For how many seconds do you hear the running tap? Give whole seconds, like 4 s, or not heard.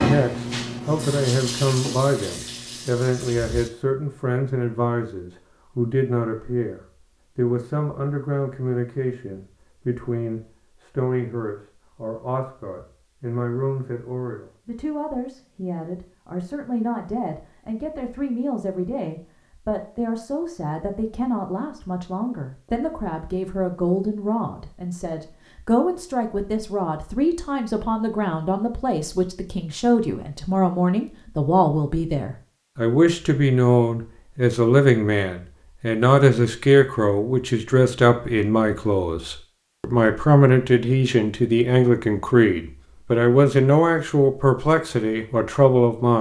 4 s.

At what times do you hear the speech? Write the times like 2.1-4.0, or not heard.
0.0-46.1.